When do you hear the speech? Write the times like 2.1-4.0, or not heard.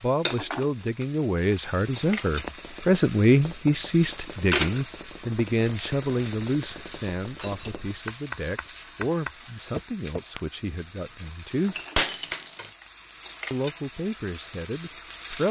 0.0-11.8, 13.5-15.4.